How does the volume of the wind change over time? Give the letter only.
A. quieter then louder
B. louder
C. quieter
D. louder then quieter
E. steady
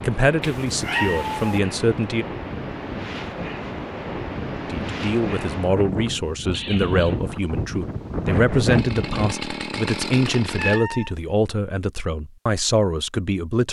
B.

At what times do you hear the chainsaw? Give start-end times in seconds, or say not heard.
8.7-10.8.